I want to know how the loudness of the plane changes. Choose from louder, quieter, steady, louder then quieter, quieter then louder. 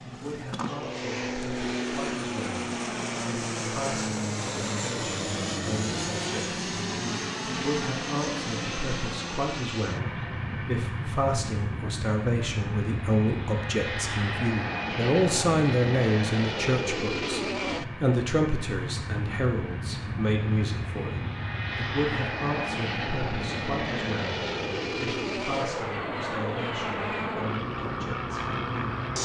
steady.